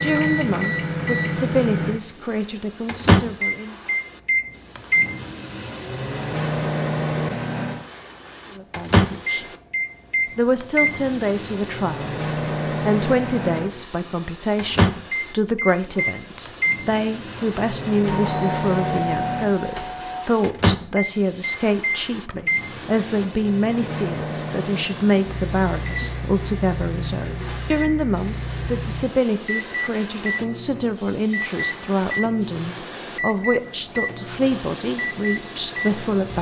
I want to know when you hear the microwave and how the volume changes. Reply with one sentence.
You can hear the microwave from 0.0 to 36.3 s, getting quieter.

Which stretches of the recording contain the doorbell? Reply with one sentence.
You can hear the doorbell from 18.1 to 20.2 s.